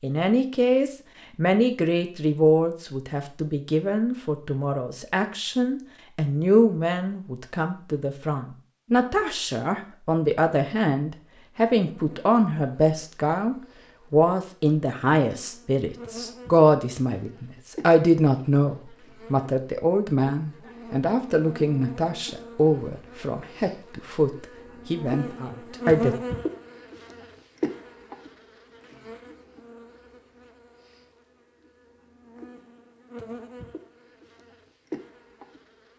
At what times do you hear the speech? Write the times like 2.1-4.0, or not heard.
0.0-26.1.